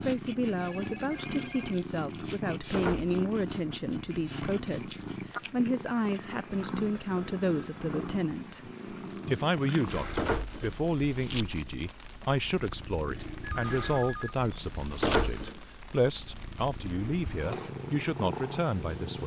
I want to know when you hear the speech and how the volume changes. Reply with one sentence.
You can hear the speech from 0.0 to 19.2 s, at a steady volume.